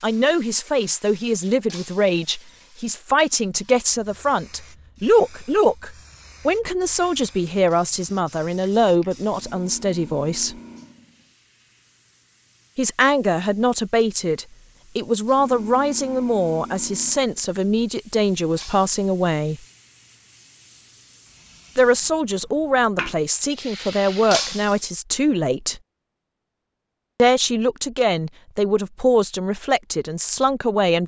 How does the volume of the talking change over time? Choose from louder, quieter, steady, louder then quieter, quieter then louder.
steady.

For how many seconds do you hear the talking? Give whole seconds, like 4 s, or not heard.
25 s.